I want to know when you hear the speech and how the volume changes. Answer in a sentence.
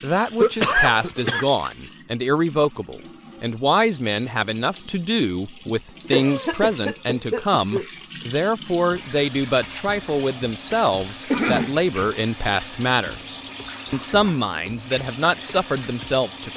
You can hear the speech from 0.0 to 16.5 s, at a steady volume.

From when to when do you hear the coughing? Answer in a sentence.
You can hear the coughing from 0.4 to 1.4 s, from 5.7 to 7.8 s and from 11.3 to 11.8 s.